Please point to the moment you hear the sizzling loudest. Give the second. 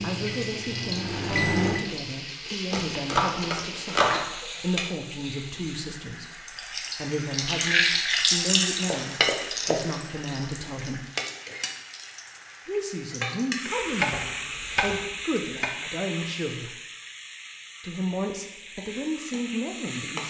8 s.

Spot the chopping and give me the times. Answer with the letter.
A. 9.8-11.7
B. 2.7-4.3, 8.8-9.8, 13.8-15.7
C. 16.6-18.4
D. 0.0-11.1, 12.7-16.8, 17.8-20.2
B.